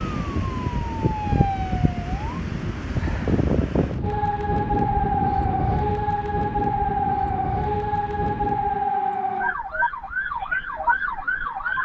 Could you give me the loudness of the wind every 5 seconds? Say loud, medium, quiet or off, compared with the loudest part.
loud, loud, off.